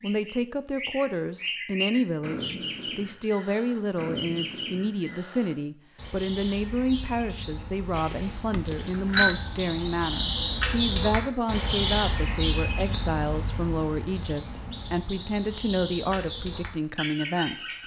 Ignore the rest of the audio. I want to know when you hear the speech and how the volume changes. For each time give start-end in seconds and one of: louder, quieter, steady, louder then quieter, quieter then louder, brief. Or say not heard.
0.0-17.8 steady.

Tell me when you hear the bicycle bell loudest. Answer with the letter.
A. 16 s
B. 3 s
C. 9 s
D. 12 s
C.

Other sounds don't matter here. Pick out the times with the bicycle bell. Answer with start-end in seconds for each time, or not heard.
8.0-9.3.